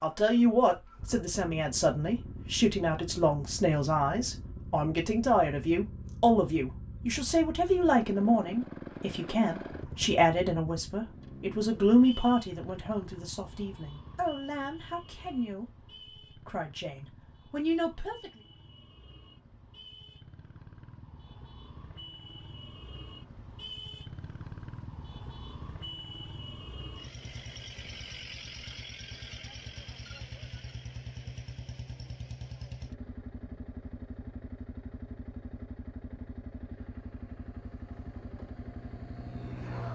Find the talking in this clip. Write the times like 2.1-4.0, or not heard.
0.0-18.3.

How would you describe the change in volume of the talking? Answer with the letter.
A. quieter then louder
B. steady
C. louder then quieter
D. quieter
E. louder
D.